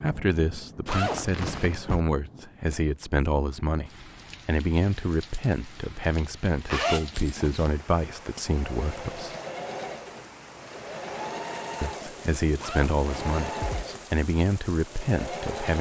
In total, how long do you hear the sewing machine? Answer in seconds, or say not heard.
7 s.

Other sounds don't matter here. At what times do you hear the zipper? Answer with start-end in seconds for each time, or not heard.
0.8-2.0, 6.7-7.8, 12.6-14.0.